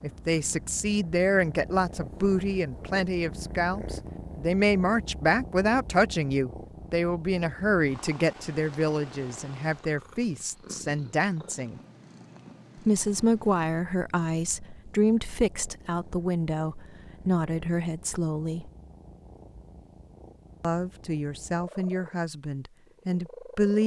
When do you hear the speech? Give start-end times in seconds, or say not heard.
0.0-11.8, 12.8-18.7, 20.6-23.8.